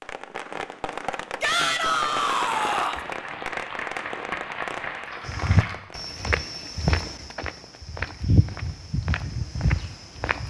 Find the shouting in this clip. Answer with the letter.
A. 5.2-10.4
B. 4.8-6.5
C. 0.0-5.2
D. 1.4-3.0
D.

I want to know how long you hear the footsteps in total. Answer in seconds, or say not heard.
5 s.